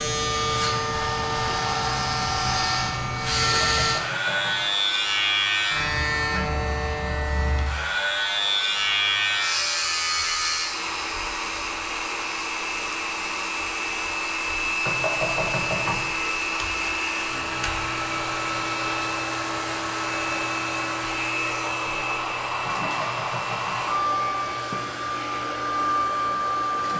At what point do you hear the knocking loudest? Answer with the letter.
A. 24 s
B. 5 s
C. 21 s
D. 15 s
D.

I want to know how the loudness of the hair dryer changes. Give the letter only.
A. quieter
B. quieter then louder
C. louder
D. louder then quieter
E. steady
C.